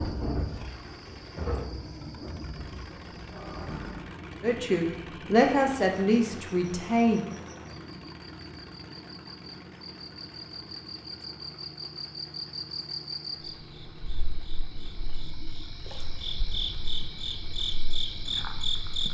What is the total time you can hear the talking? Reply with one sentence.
You can hear the talking for 3 seconds altogether.